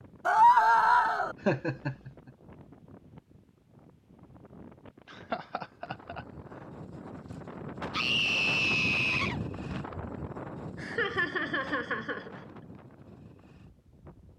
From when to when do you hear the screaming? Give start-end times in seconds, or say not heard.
0.2-1.4, 7.9-9.4.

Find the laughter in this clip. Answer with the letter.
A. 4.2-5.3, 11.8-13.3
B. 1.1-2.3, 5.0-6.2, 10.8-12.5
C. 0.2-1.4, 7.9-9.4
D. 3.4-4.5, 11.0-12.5
B.